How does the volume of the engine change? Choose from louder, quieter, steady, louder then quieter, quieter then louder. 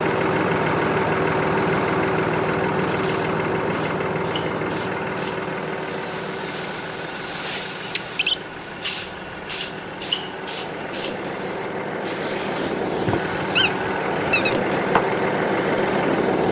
quieter then louder.